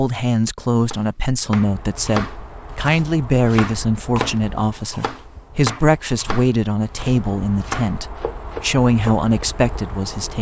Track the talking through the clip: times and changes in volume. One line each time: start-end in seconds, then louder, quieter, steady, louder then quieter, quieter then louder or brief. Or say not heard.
0.0-10.3 steady.